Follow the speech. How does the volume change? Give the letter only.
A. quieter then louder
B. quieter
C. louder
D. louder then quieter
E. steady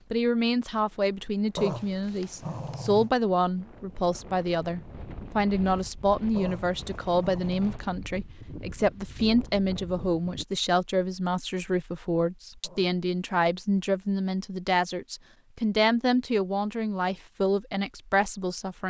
E.